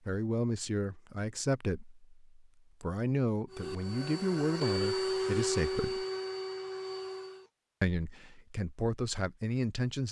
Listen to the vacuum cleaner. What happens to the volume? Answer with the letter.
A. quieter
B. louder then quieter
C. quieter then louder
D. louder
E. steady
B.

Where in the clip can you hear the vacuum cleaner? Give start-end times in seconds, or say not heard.
3.5-7.5.